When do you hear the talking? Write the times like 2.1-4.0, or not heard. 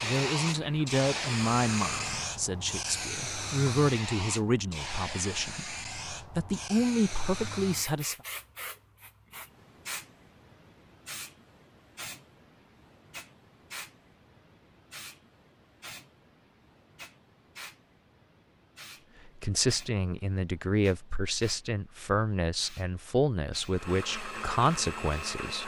0.0-8.2, 19.2-25.6.